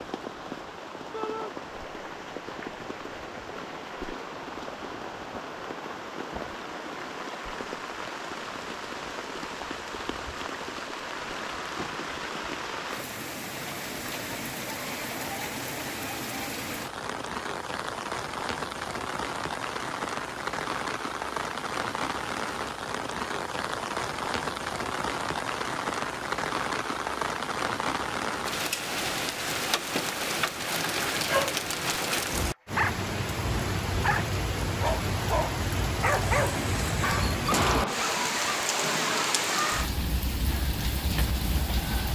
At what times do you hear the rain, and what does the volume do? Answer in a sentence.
The rain can be heard from 0.0 to 42.0 s, getting louder.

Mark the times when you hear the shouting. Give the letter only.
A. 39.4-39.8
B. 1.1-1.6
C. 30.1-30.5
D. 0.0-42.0
B.